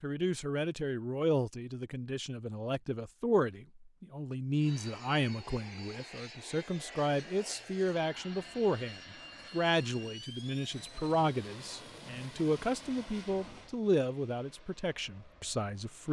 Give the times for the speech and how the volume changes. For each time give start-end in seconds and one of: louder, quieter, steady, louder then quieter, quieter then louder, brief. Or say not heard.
0.0-16.0 steady.